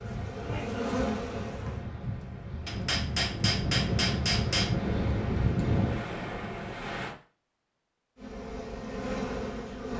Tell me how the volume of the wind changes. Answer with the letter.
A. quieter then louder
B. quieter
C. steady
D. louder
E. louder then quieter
D.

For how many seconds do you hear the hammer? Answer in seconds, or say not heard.
2 s.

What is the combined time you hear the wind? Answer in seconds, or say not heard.
7 s.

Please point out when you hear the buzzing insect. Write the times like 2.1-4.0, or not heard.
0.0-1.9, 8.2-9.9.